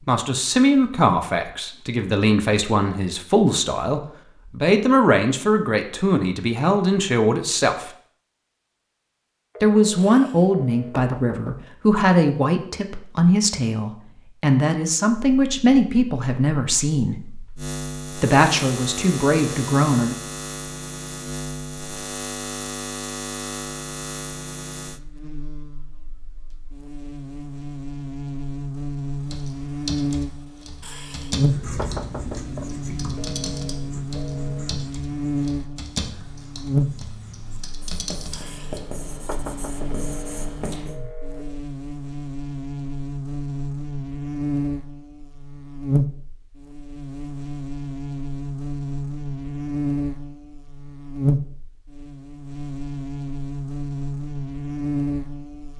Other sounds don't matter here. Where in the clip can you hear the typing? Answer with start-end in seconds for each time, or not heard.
29.2-38.9.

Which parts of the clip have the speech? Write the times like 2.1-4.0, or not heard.
0.0-7.9, 9.6-17.1, 18.2-20.1.